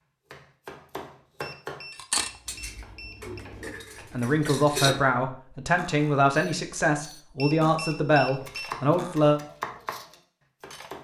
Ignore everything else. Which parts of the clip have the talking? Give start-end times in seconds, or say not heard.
4.1-9.4.